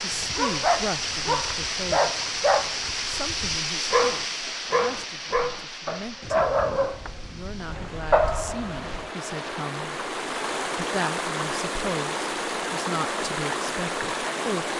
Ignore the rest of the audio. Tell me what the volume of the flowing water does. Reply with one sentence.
The volume of the flowing water goes down, then up.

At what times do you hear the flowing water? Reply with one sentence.
The flowing water can be heard from 0.0 to 14.7 s.